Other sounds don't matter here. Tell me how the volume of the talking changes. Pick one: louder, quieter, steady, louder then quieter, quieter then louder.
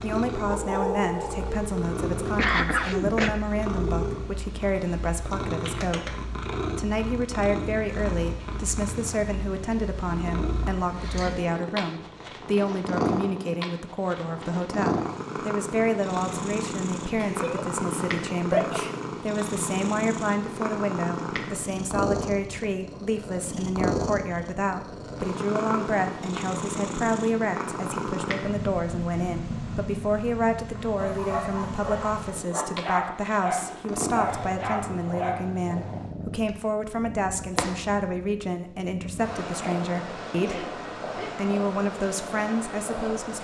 steady.